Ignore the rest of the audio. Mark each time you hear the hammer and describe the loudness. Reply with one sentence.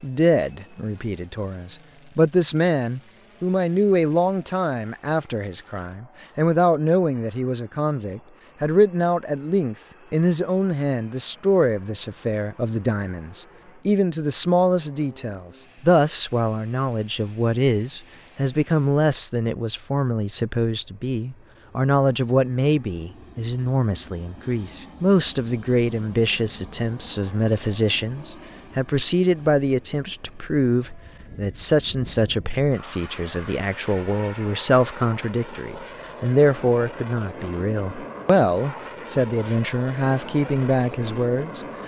The hammer can't be heard in this clip.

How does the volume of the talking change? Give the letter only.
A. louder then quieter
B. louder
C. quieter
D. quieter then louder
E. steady
E.